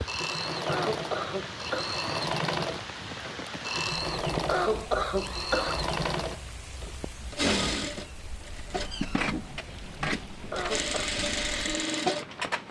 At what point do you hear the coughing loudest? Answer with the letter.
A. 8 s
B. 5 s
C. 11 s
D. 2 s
B.